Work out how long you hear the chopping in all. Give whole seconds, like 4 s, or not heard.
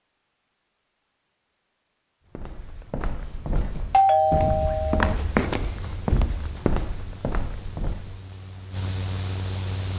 not heard.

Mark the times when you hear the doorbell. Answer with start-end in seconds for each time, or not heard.
3.9-5.2.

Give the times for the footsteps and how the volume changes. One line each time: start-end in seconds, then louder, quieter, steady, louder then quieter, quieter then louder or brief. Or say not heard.
2.4-8.2 louder then quieter.